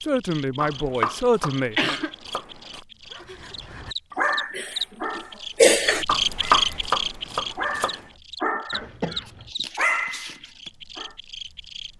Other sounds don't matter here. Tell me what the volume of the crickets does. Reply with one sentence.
The volume of the crickets goes up, then down.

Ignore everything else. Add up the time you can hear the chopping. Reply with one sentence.
The chopping can be heard for 4 seconds in total.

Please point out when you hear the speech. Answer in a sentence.
You can hear the speech from 0.1 to 1.8 s.